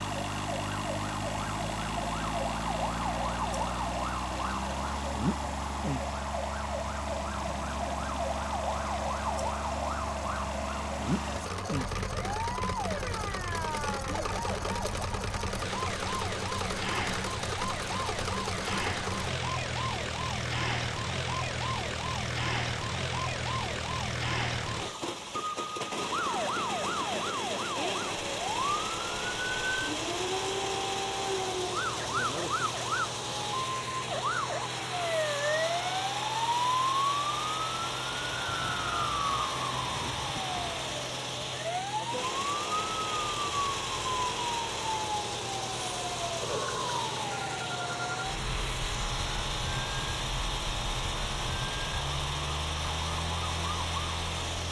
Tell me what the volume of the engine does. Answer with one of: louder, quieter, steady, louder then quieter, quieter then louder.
steady.